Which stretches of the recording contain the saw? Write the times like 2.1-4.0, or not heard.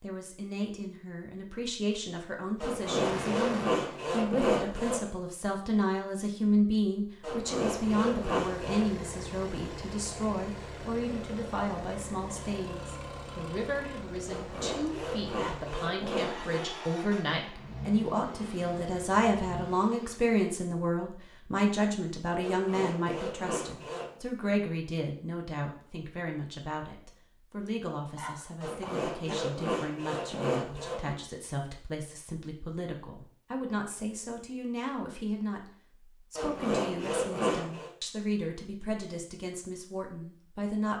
2.6-5.1, 7.2-8.9, 14.2-16.6, 22.4-24.1, 28.6-31.1, 36.4-37.9.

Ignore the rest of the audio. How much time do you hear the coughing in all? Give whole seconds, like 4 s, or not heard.
3 s.